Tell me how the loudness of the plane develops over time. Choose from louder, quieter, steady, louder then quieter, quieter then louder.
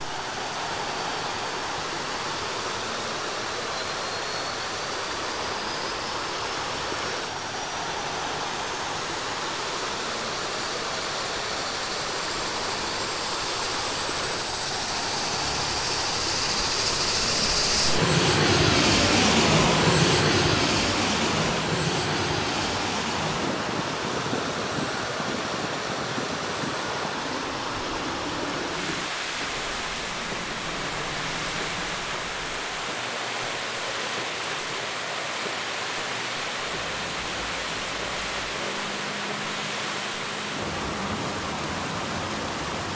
louder then quieter.